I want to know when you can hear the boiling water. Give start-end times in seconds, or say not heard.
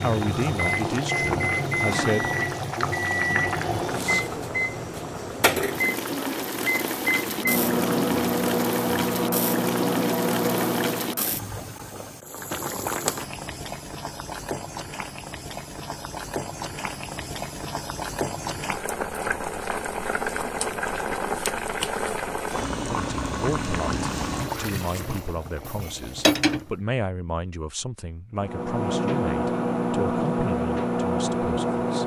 0.0-26.8.